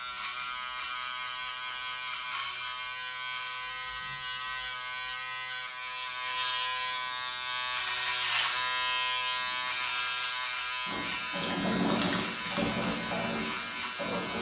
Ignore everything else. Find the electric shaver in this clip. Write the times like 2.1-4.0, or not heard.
0.0-14.3.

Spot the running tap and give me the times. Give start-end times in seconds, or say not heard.
10.8-14.3.